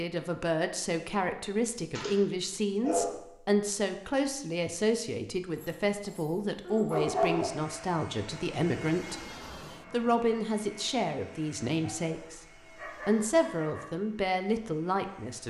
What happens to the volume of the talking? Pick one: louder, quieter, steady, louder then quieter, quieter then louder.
steady.